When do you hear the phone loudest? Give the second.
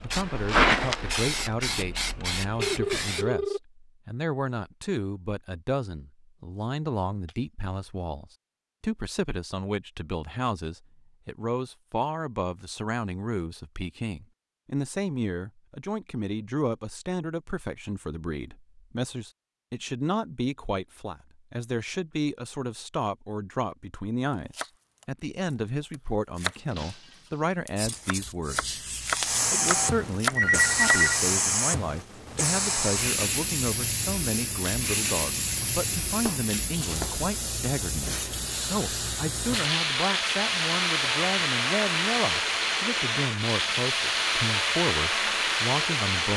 31 s.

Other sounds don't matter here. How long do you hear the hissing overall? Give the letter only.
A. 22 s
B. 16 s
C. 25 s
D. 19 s
A.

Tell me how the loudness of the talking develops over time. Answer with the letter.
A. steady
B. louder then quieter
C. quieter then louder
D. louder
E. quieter
A.